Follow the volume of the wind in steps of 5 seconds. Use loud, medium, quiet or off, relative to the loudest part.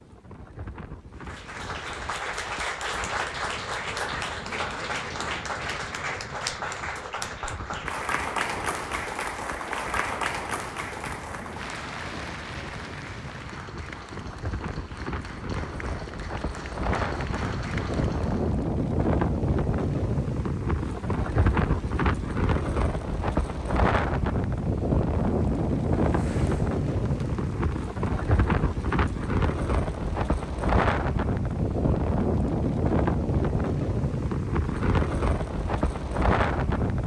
quiet, quiet, quiet, loud, loud, loud, loud, loud.